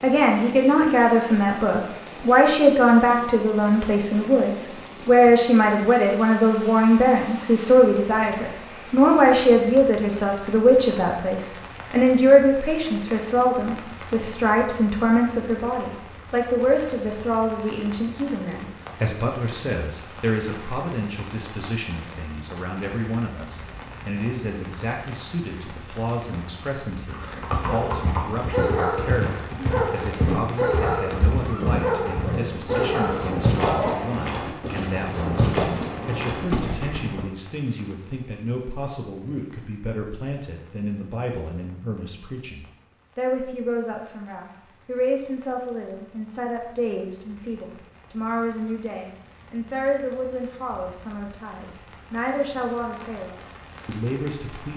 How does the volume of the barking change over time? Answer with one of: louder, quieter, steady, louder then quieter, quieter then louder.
steady.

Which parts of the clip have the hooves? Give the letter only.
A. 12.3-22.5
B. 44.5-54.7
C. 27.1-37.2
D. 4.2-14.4
C.